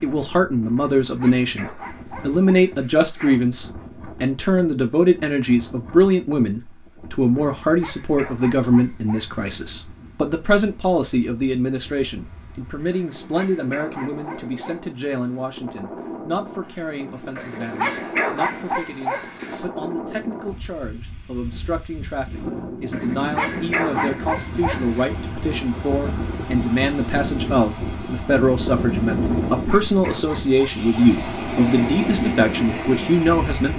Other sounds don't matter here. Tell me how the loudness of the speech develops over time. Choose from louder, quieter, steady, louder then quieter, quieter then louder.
quieter then louder.